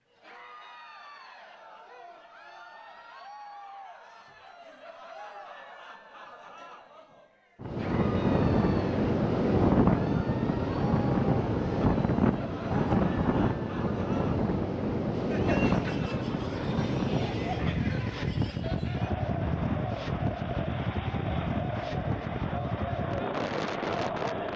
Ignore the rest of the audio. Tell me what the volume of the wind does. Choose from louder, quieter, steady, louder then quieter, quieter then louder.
quieter.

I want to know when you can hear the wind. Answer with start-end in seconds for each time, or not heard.
7.6-24.5.